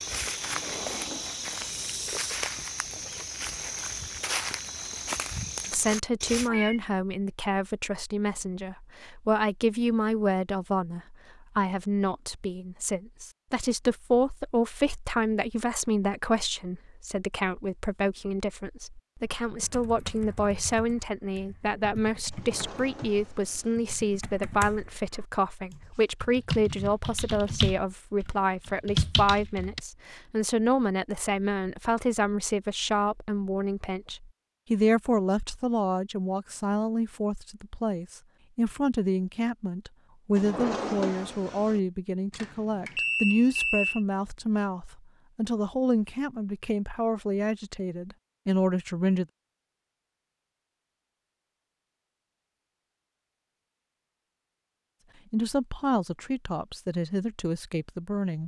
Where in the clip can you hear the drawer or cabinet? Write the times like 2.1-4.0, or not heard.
0.4-1.9, 22.3-23.8, 40.4-41.8.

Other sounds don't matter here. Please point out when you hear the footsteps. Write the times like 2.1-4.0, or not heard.
0.0-6.5.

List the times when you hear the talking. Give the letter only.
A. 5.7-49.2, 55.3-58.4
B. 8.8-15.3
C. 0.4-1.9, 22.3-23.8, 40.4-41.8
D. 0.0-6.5
A.